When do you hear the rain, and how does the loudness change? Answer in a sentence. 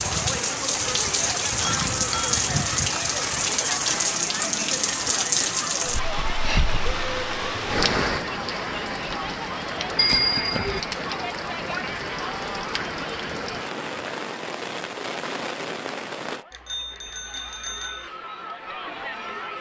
The rain can be heard from 0.0 to 16.4 s, getting quieter.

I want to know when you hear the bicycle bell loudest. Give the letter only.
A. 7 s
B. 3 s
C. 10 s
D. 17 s
C.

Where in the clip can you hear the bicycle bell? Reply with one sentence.
You can hear the bicycle bell from 1.6 to 2.7 s, from 9.9 to 10.8 s and from 16.5 to 18.1 s.